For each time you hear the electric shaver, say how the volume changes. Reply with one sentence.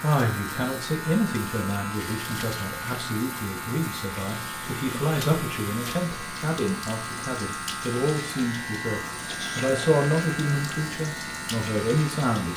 You can hear the electric shaver from 0.0 to 12.5 s, at a steady volume.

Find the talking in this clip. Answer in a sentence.
You can hear the talking from 0.0 to 12.5 s.